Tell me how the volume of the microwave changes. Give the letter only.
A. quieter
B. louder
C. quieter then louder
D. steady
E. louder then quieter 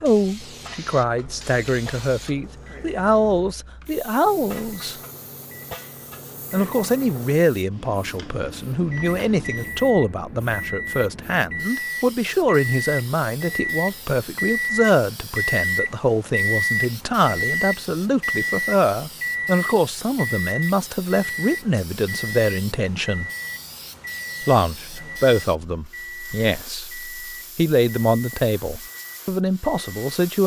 E.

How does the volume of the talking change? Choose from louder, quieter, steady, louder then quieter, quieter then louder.
steady.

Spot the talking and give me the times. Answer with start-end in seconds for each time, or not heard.
0.0-5.0, 6.5-23.3, 24.4-30.4.